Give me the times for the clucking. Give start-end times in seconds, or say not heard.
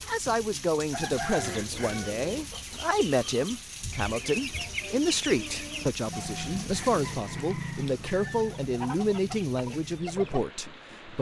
0.9-10.4.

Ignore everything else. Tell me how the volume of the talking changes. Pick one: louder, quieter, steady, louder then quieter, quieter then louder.
steady.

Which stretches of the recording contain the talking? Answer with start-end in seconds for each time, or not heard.
0.0-11.1.